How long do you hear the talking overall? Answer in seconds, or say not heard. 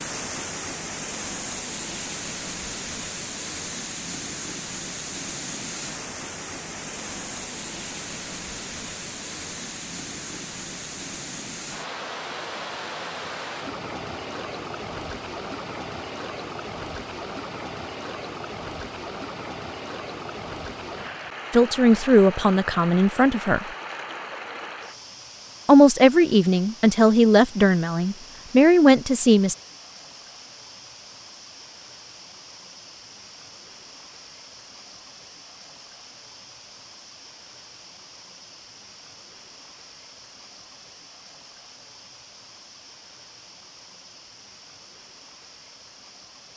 6 s.